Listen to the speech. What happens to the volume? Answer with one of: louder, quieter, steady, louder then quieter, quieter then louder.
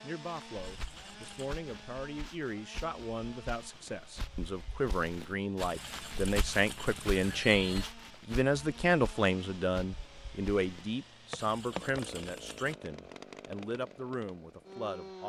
louder then quieter.